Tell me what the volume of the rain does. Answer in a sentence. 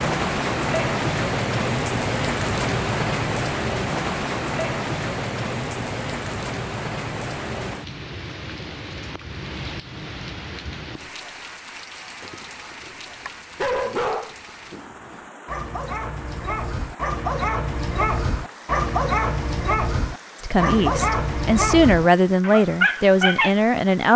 The volume of the rain goes down.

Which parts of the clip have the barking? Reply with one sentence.
The barking can be heard from 12.2 to 23.5 s.